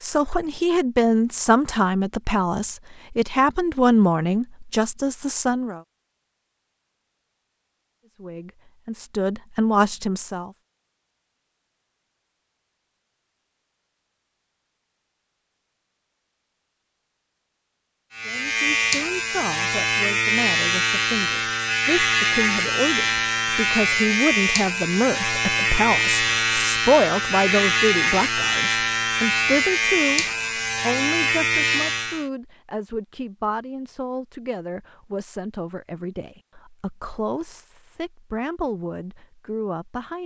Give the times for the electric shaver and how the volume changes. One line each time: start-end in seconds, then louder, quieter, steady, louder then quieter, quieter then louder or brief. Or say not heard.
18.1-32.2 steady.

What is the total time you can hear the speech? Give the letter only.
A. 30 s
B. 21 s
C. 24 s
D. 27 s
A.